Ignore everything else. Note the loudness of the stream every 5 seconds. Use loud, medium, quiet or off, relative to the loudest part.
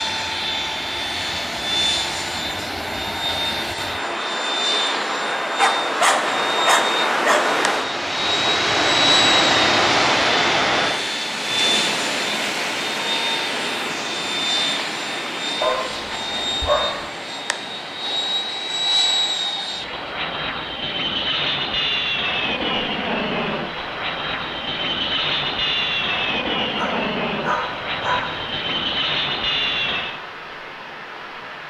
medium, loud, loud, quiet, quiet, quiet, quiet.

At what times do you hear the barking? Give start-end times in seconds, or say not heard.
5.5-7.5, 15.6-17.1, 26.7-28.7.